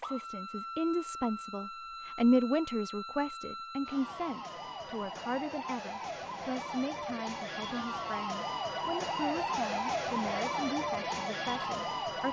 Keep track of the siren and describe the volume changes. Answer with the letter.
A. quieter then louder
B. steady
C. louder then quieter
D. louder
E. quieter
D.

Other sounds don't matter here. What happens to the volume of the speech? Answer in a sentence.
The volume of the speech goes down.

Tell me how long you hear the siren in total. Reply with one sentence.
The siren can be heard for 12 seconds in total.